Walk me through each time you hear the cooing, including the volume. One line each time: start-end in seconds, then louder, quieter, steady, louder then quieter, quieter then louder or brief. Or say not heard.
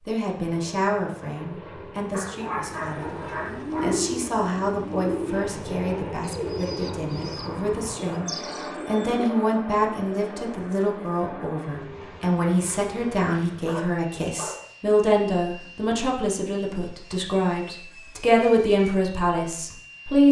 2.7-9.2 quieter.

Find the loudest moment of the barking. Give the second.
3 s.